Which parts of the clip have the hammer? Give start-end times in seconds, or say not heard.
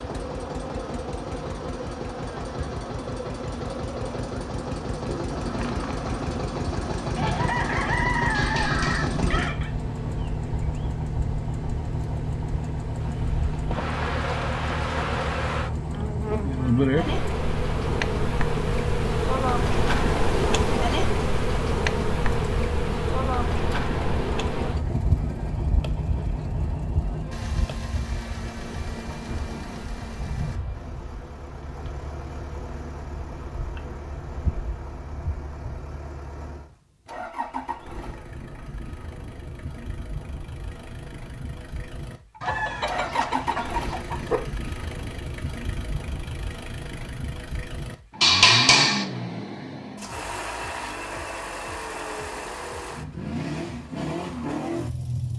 8.3-9.2, 48.2-49.0.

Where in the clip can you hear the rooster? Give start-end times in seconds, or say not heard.
7.2-9.7, 42.4-44.4.